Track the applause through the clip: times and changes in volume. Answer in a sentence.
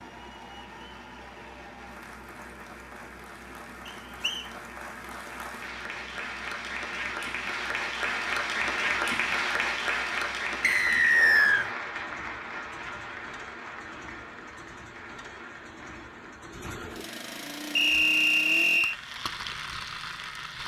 The applause can be heard from 0.0 to 20.6 s, getting louder then quieter.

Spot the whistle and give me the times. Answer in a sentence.
You can hear the whistle from 3.9 to 4.5 s, from 10.6 to 11.7 s and from 17.8 to 18.9 s.